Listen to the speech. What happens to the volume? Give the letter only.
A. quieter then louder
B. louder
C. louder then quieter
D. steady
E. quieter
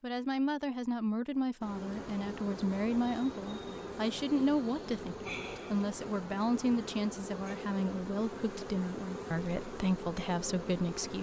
D.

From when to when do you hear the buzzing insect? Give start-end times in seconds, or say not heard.
1.6-11.1.